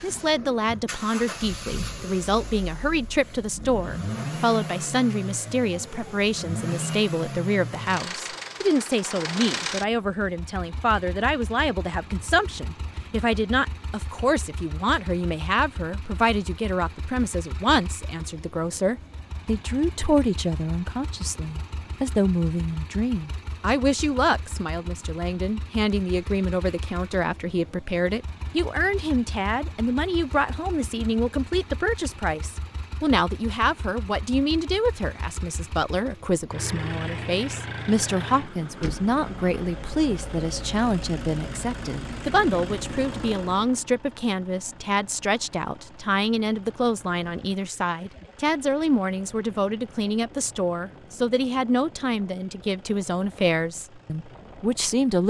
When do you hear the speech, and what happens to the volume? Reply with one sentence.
You can hear the speech from 0.0 to 55.2 s, at a steady volume.